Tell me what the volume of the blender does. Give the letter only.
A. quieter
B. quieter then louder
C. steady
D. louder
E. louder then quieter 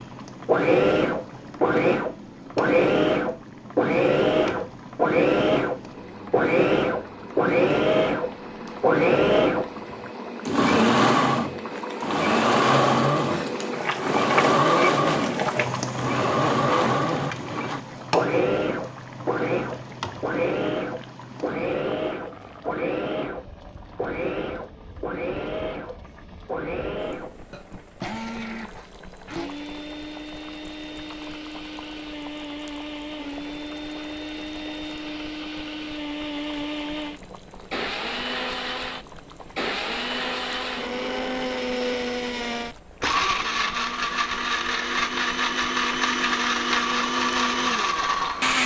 B.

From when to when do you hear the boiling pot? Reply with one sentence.
The boiling pot can be heard from 0.0 to 48.5 s.